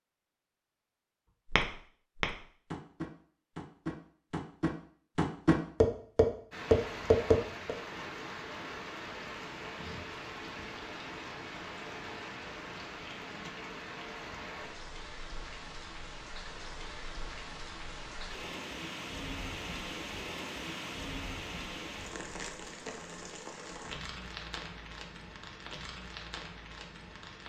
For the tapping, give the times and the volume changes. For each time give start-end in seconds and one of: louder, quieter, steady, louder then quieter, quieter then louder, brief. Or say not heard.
1.5-7.8 louder.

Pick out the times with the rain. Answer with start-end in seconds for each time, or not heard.
6.5-27.4.